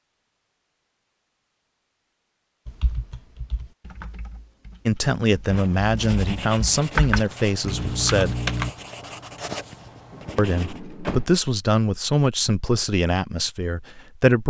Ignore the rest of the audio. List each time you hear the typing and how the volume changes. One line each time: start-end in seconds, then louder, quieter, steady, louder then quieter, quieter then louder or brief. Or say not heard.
2.6-8.7 quieter then louder.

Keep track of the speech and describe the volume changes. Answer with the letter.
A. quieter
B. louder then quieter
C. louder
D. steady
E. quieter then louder
D.